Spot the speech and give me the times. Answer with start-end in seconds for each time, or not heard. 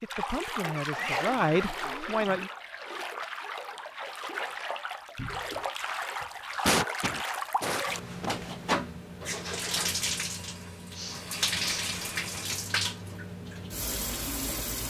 0.0-2.5.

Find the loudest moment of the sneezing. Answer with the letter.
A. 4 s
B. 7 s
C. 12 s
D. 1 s
B.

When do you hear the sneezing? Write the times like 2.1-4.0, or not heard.
0.9-1.4, 6.7-8.3, 10.9-11.8.